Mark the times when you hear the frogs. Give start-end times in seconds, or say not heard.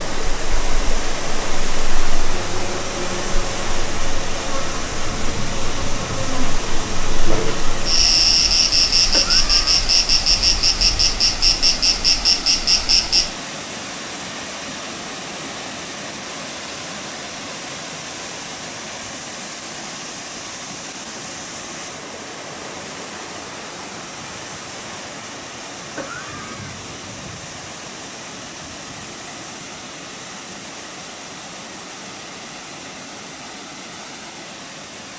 not heard.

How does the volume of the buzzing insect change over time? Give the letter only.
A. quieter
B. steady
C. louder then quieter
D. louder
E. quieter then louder
D.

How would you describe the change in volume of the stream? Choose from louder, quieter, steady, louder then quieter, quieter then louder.
quieter.